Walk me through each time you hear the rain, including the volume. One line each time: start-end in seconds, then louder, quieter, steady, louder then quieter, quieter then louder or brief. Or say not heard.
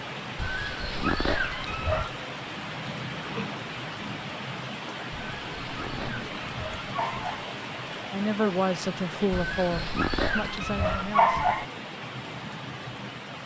0.0-13.4 steady.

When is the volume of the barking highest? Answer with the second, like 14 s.
11 s.